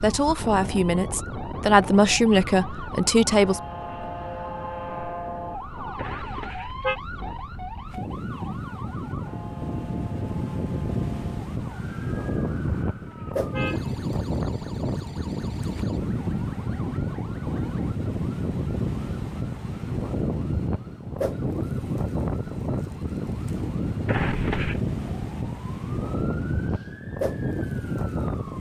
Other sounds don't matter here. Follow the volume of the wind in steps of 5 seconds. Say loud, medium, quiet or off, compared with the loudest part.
medium, medium, loud, loud, loud, loud.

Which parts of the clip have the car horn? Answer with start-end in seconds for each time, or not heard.
6.0-7.0, 12.9-14.0, 24.1-24.8.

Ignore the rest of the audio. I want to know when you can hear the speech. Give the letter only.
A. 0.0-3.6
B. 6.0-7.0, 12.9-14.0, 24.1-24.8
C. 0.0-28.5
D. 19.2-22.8
A.